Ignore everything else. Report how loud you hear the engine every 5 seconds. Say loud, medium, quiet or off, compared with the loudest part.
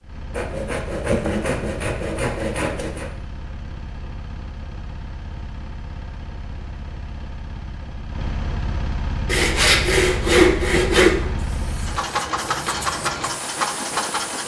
quiet, medium, loud.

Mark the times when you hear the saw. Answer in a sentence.
The saw can be heard from 0.3 to 3.1 s and from 9.2 to 11.2 s.